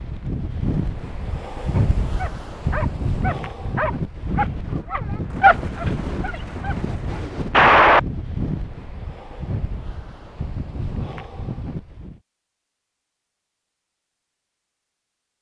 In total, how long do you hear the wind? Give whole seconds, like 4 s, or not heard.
12 s.